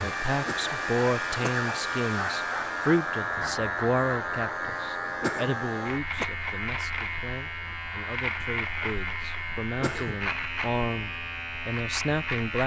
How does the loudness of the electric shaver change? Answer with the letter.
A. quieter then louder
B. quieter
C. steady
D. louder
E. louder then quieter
C.